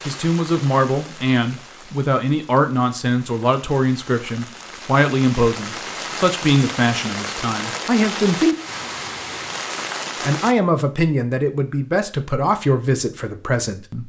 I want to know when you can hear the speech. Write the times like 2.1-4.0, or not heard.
0.1-8.6, 10.2-14.0.